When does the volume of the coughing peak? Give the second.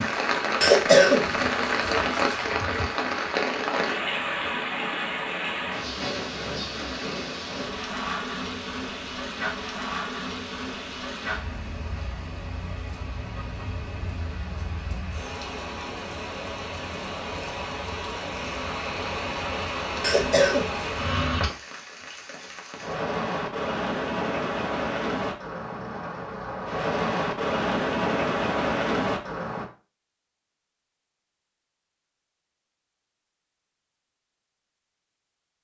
1 s.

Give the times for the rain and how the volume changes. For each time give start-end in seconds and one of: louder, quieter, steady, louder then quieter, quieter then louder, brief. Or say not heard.
0.0-29.7 quieter then louder.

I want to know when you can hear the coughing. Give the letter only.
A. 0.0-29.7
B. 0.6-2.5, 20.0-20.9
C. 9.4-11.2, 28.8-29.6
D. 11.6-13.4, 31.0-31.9
B.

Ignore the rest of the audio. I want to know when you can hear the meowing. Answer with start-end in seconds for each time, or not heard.
not heard.